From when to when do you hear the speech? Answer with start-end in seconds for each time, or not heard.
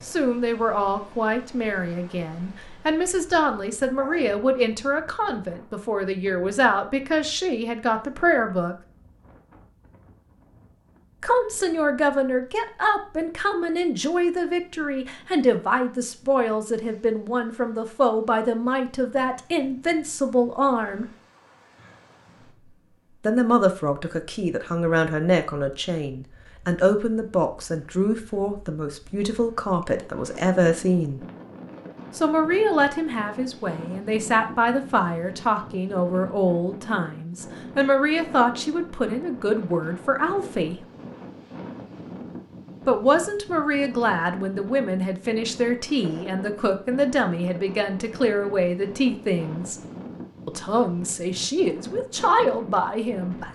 0.0-8.8, 11.2-21.1, 23.2-31.2, 32.1-40.8, 42.9-49.8, 50.5-53.5.